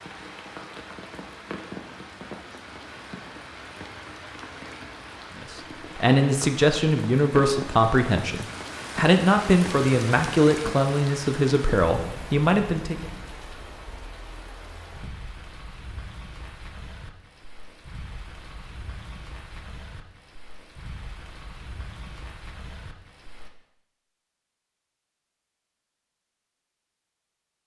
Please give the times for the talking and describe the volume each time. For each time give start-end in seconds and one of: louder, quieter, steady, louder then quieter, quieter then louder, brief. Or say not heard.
5.4-13.1 steady.